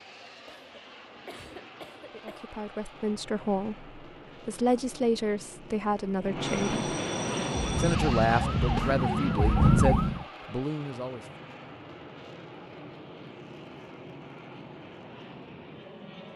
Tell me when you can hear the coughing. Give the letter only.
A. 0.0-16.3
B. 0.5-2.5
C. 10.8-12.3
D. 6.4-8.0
B.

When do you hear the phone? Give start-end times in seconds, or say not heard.
6.4-8.0.